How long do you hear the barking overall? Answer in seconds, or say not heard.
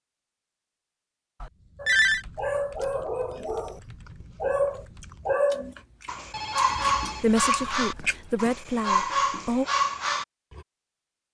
9 s.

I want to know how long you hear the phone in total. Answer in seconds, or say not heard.
3 s.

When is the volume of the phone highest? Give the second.
2 s.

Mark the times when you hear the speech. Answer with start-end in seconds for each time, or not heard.
7.2-9.7.